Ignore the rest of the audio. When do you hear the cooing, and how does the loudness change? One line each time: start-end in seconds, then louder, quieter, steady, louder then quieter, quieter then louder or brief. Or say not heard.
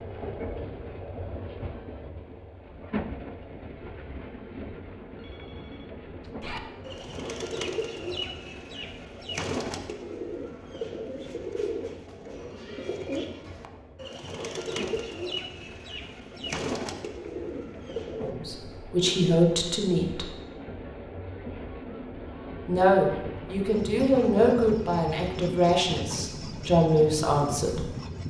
6.4-18.4 steady.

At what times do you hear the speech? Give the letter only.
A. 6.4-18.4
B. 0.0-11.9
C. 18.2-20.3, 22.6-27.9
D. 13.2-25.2
C.